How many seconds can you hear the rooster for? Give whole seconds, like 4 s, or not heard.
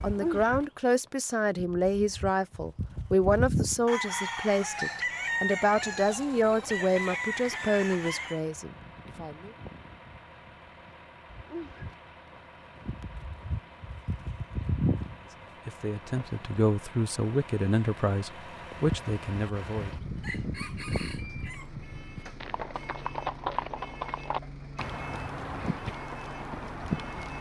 6 s.